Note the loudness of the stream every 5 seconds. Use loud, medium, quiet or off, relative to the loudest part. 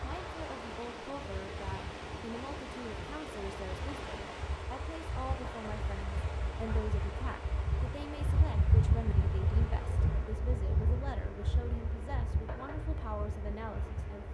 loud, loud, medium.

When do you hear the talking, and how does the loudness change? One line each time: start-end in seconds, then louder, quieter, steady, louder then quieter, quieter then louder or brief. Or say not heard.
0.0-14.2 steady.